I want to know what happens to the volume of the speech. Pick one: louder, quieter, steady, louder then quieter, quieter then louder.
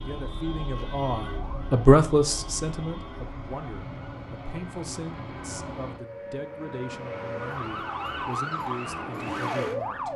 quieter.